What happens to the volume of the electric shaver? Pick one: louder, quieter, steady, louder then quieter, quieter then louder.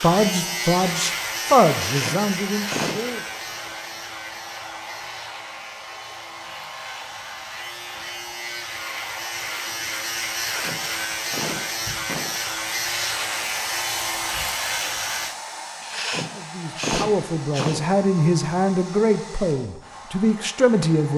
quieter then louder.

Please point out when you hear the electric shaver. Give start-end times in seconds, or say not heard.
0.0-15.3.